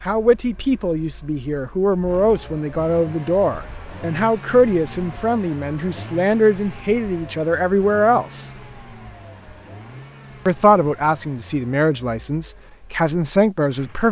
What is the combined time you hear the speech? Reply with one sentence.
The speech can be heard for 12 seconds in total.